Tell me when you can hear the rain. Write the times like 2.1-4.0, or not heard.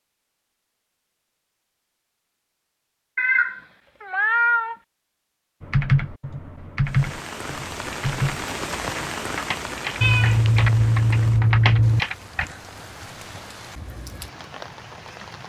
6.8-15.4.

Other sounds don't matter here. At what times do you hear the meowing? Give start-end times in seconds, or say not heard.
3.1-4.8, 10.0-12.0.